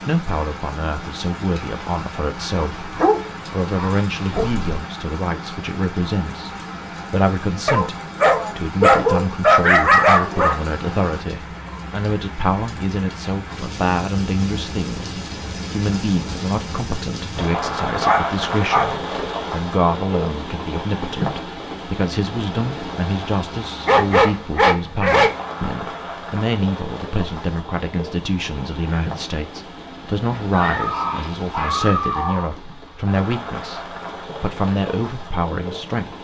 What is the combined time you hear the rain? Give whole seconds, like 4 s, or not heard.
36 s.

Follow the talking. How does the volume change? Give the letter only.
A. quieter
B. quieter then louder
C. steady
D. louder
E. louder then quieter
C.